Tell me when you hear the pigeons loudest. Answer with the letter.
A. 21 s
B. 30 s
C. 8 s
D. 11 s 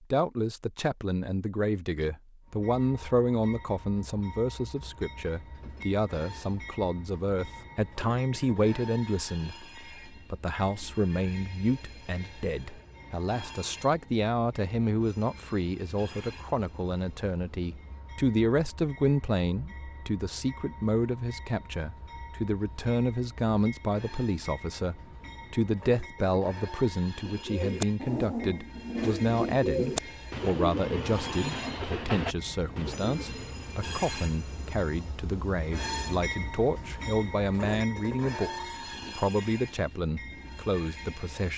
B.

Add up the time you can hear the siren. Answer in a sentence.
You can't hear the siren here.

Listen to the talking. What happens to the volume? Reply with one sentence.
The volume of the talking stays about the same.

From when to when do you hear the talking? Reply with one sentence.
The talking can be heard from 0.1 to 41.5 s.